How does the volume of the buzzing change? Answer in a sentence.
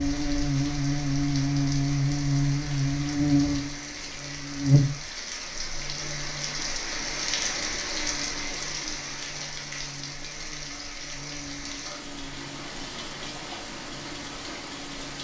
The loudness of the buzzing goes down.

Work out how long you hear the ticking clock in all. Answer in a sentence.
The ticking clock can't be heard in this clip.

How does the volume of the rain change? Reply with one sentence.
The volume of the rain goes up, then down.